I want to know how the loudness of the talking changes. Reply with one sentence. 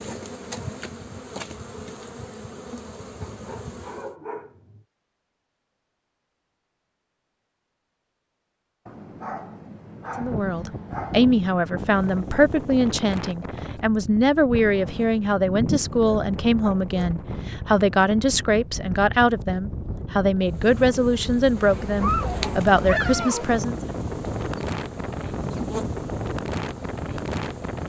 The loudness of the talking stays about the same.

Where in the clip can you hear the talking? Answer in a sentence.
You can hear the talking from 10.2 to 23.8 s.